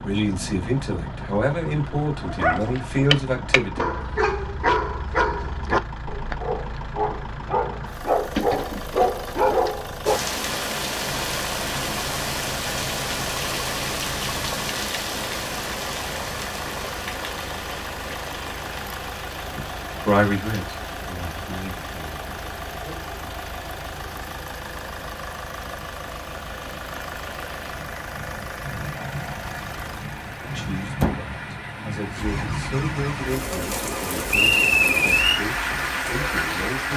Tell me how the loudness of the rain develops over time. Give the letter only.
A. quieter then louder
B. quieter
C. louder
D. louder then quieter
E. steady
A.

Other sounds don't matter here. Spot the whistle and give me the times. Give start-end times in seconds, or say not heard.
34.3-35.4.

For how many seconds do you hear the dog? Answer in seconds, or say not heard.
8 s.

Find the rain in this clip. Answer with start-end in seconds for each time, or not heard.
10.1-36.9.